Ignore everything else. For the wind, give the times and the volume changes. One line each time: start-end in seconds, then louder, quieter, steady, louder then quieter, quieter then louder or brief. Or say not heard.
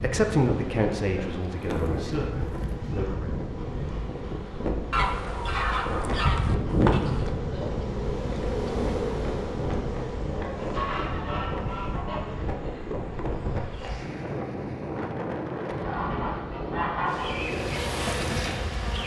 0.0-19.0 steady.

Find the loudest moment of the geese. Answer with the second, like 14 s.
7 s.